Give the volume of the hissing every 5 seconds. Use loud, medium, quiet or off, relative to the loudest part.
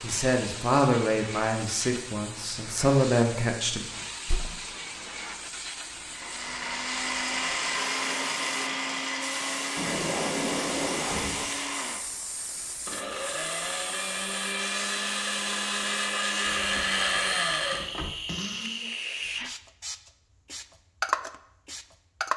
medium, medium, medium, medium, loud.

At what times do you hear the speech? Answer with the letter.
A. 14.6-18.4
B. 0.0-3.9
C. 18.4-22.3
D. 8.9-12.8
B.